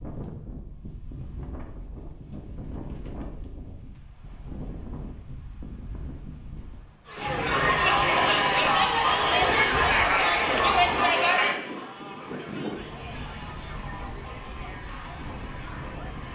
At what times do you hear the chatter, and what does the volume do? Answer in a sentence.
You can hear the chatter from 7.0 to 16.2 s, getting quieter.